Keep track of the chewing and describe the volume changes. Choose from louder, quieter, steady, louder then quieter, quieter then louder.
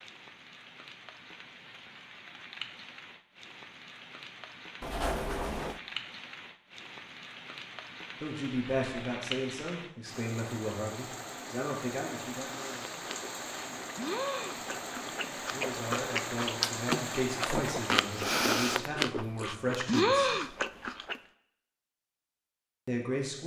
louder.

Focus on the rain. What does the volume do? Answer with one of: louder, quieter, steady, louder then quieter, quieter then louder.
louder.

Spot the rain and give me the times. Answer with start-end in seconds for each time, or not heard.
0.0-18.4.